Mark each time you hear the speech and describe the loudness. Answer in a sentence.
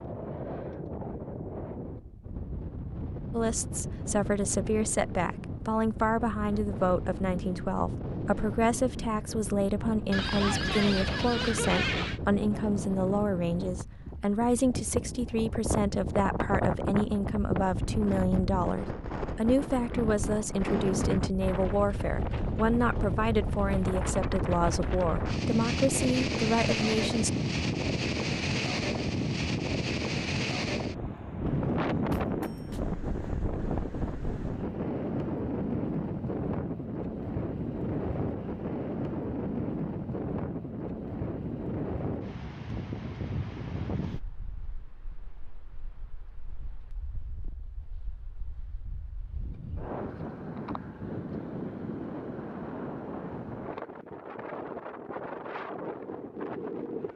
You can hear the speech from 3.3 to 27.3 s, at a steady volume.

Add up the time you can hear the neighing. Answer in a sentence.
You can hear the neighing for 2 seconds altogether.